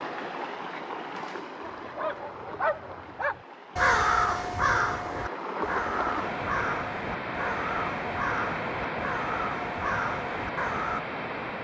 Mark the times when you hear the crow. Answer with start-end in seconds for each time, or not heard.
3.8-11.0.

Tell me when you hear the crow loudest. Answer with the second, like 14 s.
4 s.